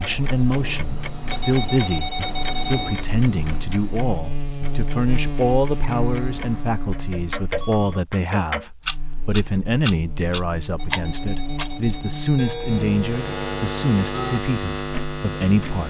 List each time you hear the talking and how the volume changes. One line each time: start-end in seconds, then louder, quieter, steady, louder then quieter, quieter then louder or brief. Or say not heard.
0.0-15.8 steady.